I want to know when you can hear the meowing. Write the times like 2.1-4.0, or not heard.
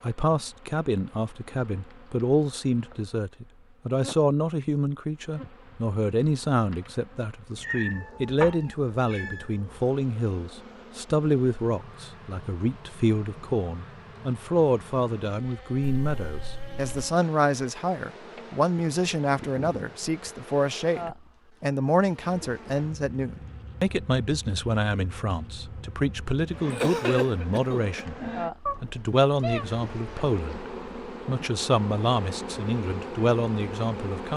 7.6-9.4, 15.8-17.1, 28.6-29.6.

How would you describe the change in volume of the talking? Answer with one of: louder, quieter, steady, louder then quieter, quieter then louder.
steady.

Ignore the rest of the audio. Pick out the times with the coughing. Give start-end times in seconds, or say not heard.
26.7-28.1.